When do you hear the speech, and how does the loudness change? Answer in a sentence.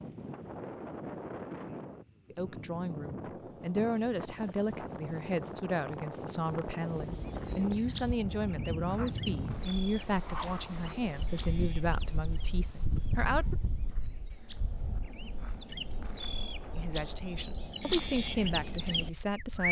You can hear the speech from 2.3 to 13.6 s, at a steady volume; and briefly from 16.8 to 19.6 s.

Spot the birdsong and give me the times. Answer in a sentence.
The birdsong can be heard from 7.0 to 19.6 s.